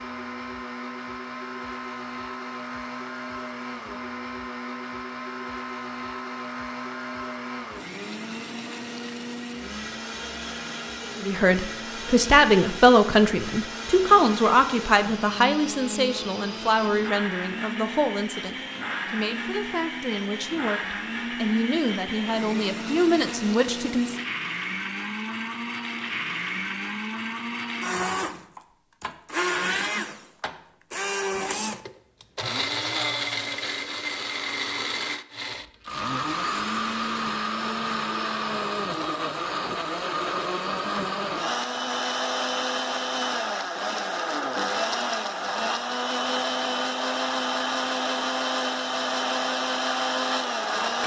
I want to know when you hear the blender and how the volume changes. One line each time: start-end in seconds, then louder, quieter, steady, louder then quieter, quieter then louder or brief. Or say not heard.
0.0-51.0 louder.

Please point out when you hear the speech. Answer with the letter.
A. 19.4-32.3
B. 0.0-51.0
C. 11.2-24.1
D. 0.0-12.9
C.